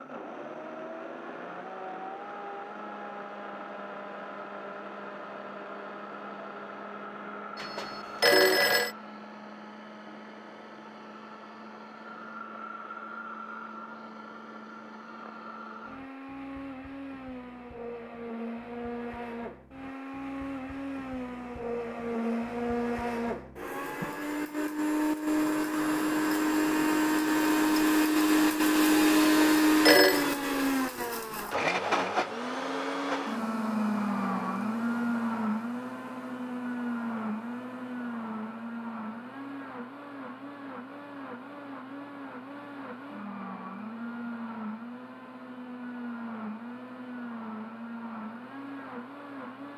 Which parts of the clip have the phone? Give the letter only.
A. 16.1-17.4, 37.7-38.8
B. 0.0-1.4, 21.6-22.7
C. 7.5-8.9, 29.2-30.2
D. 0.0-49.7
C.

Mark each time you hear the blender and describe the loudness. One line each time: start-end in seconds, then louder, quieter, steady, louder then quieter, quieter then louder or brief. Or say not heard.
0.0-49.7 louder then quieter.